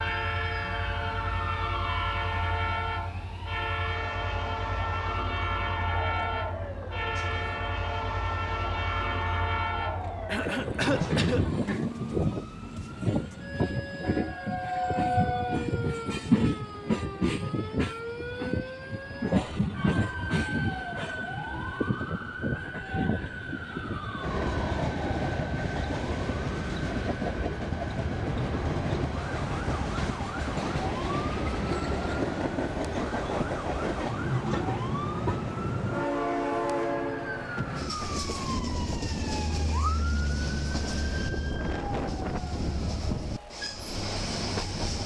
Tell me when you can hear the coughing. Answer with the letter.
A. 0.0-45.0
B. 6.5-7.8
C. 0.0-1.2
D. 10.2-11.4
D.